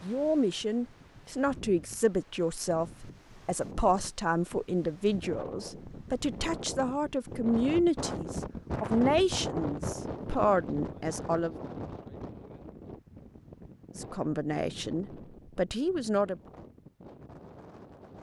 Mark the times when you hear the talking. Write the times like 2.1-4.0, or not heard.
0.0-11.6, 13.9-16.4.